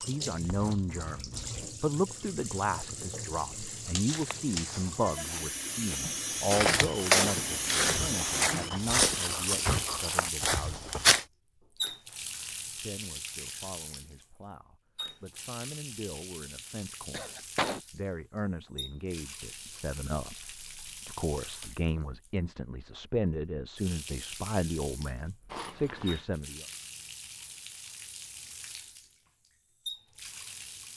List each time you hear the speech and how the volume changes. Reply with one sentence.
The speech can be heard from 0.1 to 10.9 s, getting quieter; and from 12.8 to 26.6 s, getting louder.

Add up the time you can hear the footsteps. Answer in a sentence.
The footsteps can be heard for 7 seconds in total.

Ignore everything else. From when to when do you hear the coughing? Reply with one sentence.
You can hear the coughing from 17.1 to 17.8 s.